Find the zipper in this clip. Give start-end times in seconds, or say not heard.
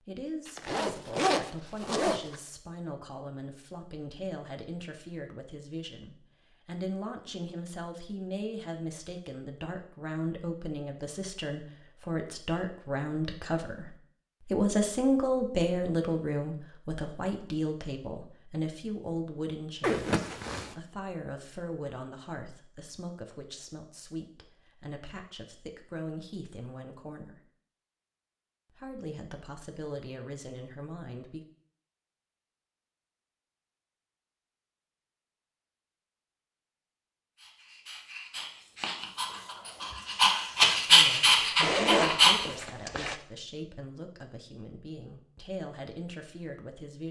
0.5-2.4, 19.8-20.8, 41.6-43.1.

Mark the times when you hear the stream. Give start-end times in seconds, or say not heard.
not heard.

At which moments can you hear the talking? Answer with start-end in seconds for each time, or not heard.
0.0-27.4, 28.7-31.4, 40.9-47.0.